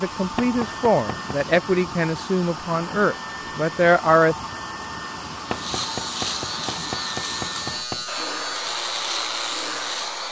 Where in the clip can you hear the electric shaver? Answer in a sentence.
The electric shaver can be heard from 5.3 to 10.2 s.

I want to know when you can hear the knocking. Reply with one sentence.
You can hear the knocking from 0.3 to 1.4 s and from 5.5 to 8.1 s.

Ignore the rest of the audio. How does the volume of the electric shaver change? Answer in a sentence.
The volume of the electric shaver stays about the same.